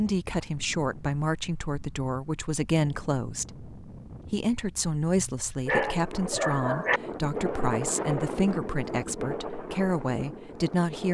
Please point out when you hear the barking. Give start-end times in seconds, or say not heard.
5.2-7.0.